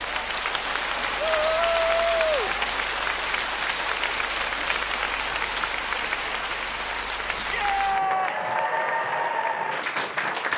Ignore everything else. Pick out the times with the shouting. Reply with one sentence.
You can hear the shouting from 1.1 to 2.5 s and from 7.3 to 8.6 s.